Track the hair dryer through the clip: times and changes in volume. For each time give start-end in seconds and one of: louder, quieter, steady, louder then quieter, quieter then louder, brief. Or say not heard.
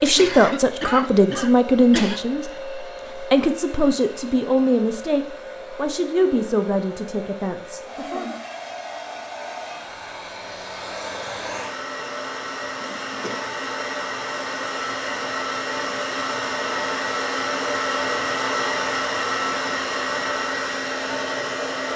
0.0-21.9 louder.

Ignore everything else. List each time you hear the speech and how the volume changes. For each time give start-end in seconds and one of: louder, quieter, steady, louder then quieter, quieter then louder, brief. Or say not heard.
0.0-8.3 quieter.